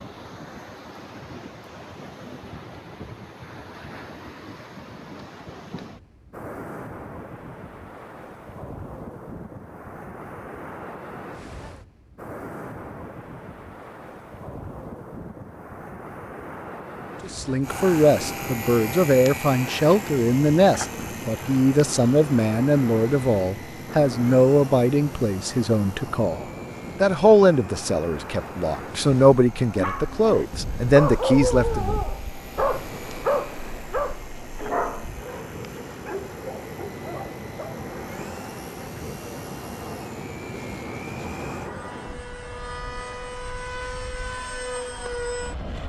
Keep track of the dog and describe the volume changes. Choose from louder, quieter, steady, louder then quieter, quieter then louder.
quieter.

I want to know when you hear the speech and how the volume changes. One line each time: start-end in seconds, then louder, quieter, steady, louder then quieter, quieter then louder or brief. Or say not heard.
17.2-31.9 steady.